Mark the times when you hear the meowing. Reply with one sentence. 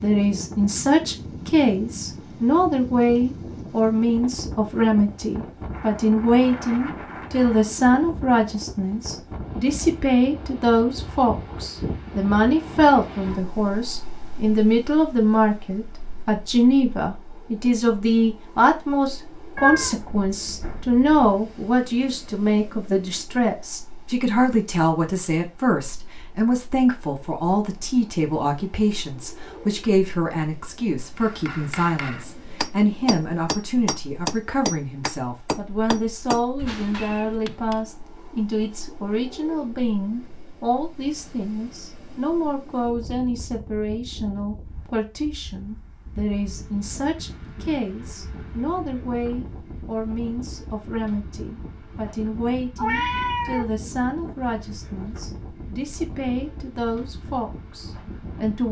You can hear the meowing from 19.6 to 21.4 s and from 52.8 to 53.6 s.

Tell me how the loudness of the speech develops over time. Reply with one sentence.
The volume of the speech goes down.